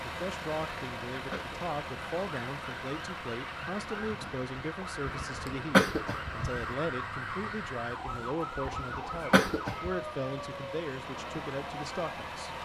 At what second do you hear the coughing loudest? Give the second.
6 s.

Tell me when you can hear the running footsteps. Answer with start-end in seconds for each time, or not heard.
not heard.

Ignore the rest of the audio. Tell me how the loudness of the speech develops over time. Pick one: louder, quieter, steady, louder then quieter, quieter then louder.
steady.